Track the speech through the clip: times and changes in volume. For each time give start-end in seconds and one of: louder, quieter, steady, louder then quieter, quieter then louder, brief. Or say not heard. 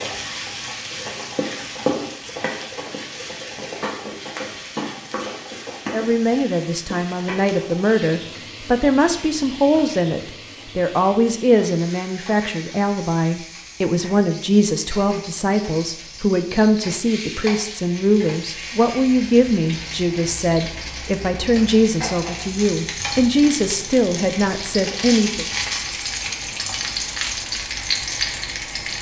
5.9-25.4 steady.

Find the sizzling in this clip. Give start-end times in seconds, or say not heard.
0.0-28.9.